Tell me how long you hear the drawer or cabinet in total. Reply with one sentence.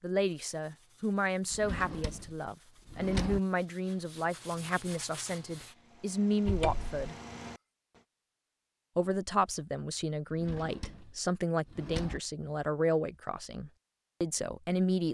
The drawer or cabinet can be heard for 4 seconds in total.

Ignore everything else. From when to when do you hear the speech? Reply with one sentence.
The speech can be heard from 0.0 to 7.2 s and from 8.9 to 15.0 s.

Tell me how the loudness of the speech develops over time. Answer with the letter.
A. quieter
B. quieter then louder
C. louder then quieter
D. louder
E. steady
E.